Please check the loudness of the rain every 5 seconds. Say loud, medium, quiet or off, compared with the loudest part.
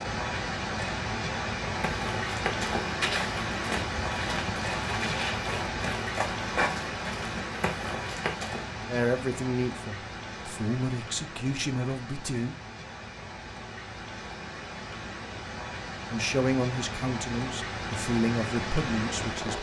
loud, loud, medium, loud.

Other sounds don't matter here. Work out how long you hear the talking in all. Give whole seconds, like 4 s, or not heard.
7 s.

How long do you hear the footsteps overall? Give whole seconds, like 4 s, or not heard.
7 s.